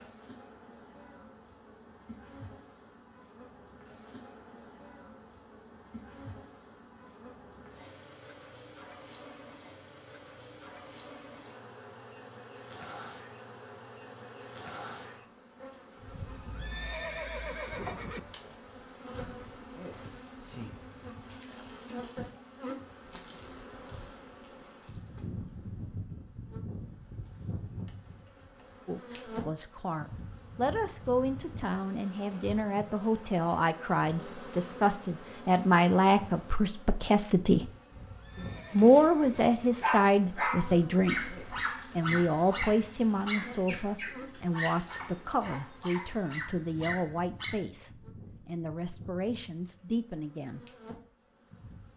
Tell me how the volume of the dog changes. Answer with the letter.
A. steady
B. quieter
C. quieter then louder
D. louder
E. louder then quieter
B.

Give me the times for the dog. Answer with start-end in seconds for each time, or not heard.
39.8-47.6.